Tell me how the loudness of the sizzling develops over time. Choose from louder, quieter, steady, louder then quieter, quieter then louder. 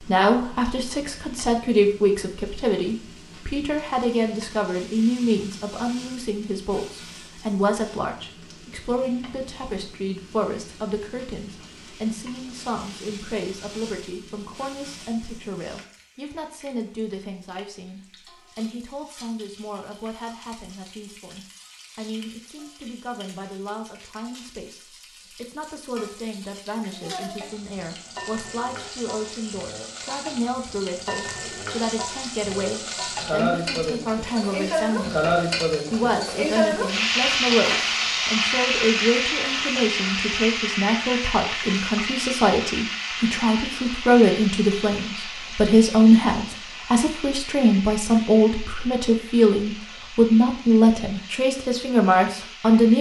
louder then quieter.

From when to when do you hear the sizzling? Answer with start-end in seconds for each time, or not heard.
0.0-52.9.